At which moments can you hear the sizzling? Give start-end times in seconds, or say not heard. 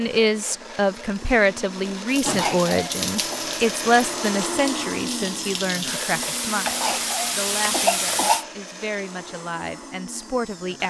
2.0-8.4.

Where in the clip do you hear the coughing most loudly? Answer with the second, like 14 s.
8 s.